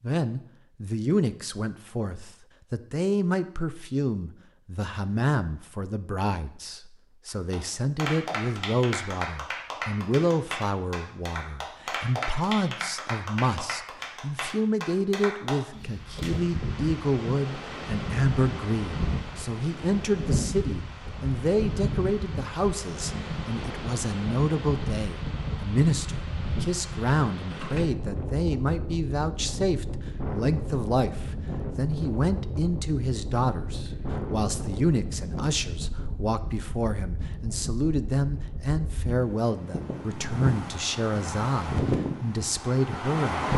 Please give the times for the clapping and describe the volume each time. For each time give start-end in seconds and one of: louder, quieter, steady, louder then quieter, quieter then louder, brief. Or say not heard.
7.2-16.3 steady.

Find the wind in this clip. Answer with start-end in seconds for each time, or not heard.
15.8-43.5.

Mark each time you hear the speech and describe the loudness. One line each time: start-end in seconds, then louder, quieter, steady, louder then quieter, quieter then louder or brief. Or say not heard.
0.0-43.5 steady.